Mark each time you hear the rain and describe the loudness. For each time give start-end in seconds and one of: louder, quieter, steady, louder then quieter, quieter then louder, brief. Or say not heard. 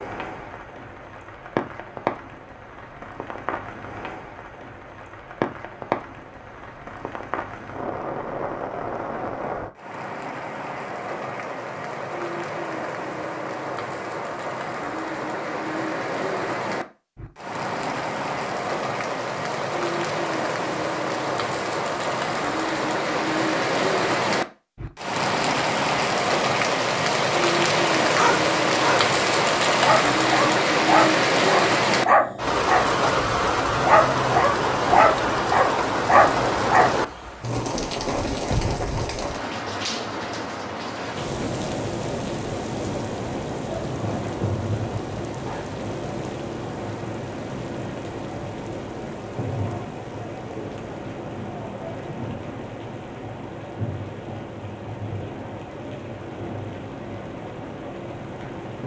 0.0-58.8 louder then quieter.